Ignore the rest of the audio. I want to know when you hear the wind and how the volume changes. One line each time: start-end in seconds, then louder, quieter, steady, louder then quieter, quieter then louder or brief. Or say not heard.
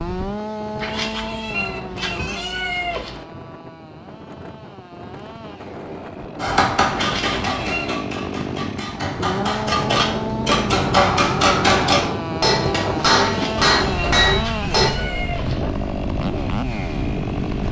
0.0-17.6 louder.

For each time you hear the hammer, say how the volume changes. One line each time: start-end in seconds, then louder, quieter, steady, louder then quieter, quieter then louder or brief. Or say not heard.
6.3-14.9 louder.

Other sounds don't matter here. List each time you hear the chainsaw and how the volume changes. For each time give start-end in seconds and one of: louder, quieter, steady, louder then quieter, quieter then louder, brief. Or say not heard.
0.0-17.6 quieter then louder.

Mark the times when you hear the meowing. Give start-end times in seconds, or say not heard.
0.8-3.2, 7.0-8.1, 13.2-15.7.